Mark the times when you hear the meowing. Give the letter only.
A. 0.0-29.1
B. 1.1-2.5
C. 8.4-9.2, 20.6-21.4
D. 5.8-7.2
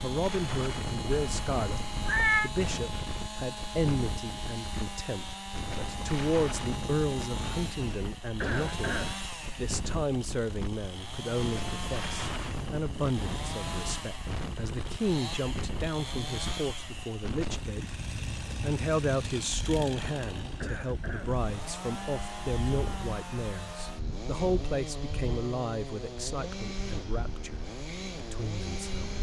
B.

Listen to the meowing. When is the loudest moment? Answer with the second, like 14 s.
2 s.